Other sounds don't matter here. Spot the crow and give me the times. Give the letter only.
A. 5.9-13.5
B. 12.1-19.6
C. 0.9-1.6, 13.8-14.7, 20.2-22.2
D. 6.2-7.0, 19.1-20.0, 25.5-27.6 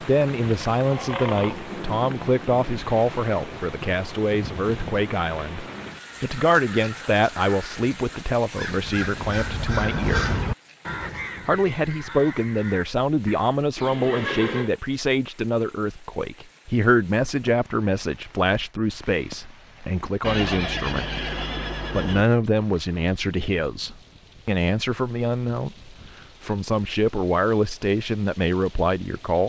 A.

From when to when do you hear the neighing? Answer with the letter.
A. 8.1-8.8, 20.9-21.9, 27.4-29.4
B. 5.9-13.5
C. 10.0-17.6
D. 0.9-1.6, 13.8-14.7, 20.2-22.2
D.